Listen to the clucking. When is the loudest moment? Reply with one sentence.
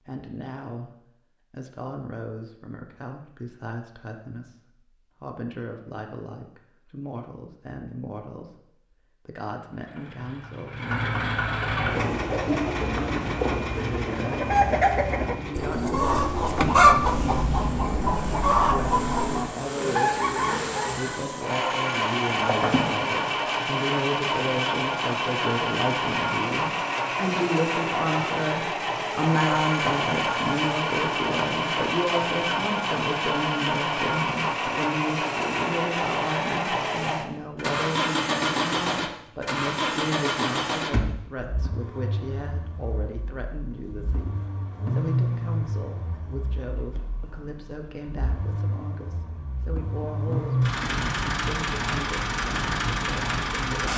The volume of the clucking peaks at 17 seconds.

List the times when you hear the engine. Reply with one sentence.
The engine can be heard from 9.7 to 53.9 s.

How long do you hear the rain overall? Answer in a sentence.
You can't hear the rain here.